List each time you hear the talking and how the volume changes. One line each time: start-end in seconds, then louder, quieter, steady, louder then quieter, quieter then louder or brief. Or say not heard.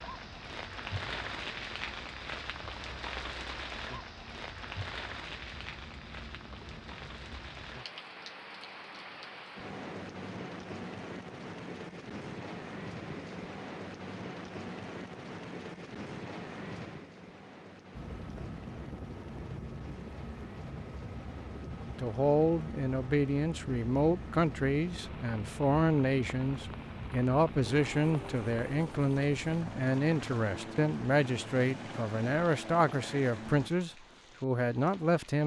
21.9-35.4 steady.